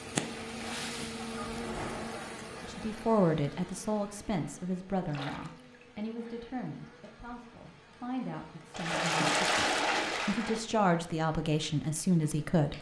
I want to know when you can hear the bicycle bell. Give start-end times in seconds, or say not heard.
not heard.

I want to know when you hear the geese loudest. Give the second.
2 s.